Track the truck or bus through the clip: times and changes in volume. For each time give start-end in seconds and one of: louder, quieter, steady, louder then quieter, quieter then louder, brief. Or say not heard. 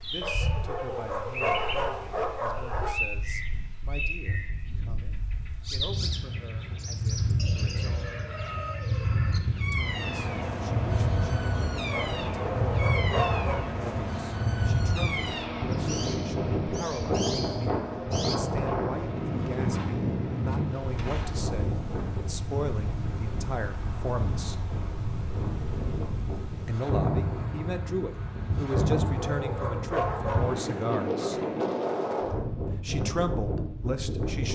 9.8-21.4 quieter.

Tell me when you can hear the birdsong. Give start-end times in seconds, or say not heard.
0.0-18.4.